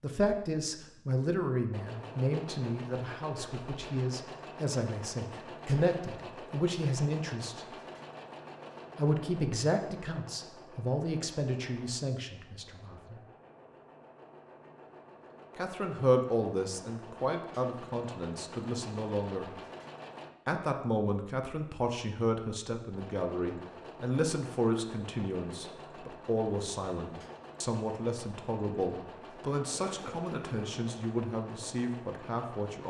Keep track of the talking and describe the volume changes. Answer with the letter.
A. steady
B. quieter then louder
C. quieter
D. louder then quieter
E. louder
A.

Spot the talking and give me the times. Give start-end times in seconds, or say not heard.
0.0-7.7, 8.9-13.2, 15.6-19.5, 20.4-32.8.